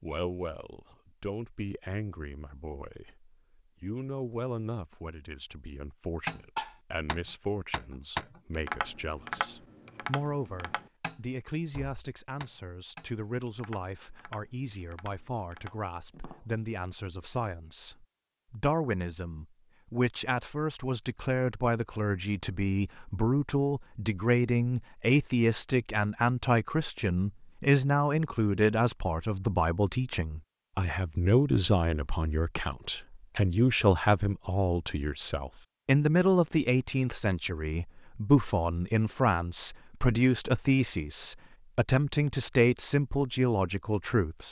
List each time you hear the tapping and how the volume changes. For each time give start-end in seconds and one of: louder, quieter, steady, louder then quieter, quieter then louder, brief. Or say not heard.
6.2-16.4 quieter.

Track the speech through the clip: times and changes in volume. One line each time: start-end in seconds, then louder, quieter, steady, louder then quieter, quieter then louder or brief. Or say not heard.
0.0-44.4 louder.